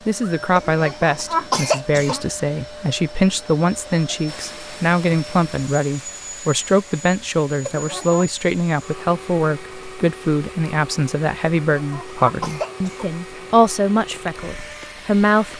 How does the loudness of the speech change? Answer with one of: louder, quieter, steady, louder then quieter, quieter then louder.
steady.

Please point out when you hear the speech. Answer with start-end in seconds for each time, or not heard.
0.1-15.5.